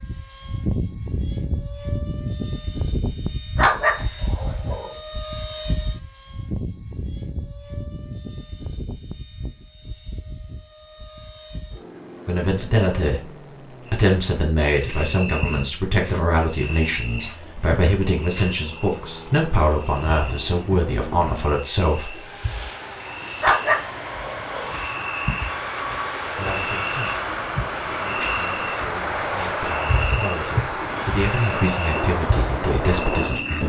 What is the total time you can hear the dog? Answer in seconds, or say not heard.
3 s.